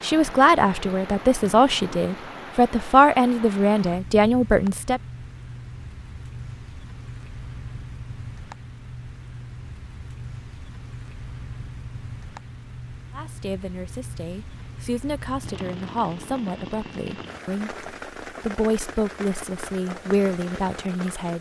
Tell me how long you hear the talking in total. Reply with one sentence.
You can hear the talking for 13 seconds altogether.